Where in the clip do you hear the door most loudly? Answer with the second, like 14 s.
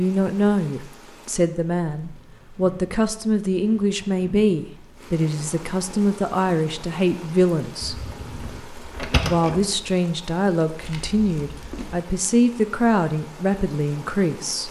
9 s.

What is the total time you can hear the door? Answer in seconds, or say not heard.
2 s.